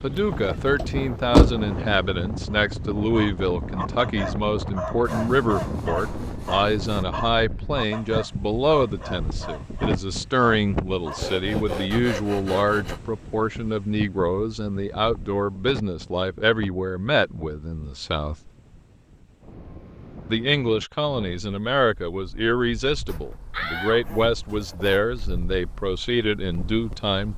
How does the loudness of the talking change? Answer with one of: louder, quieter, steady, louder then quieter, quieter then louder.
steady.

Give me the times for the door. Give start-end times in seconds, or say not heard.
0.3-1.6, 23.5-24.8.